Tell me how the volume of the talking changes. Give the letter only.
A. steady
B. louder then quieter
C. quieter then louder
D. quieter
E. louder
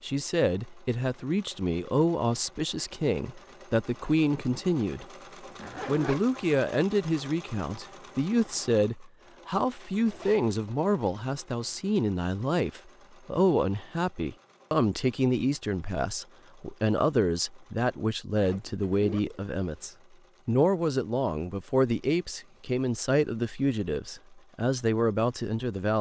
A.